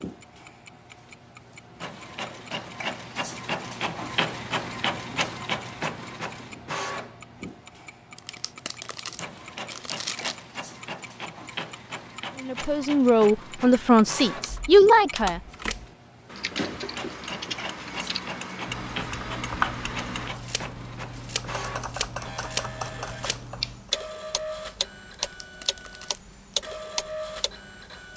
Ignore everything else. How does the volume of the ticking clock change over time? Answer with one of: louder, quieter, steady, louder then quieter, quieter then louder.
louder.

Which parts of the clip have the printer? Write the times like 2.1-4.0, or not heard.
0.0-28.1.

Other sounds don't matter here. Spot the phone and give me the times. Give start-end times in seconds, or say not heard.
not heard.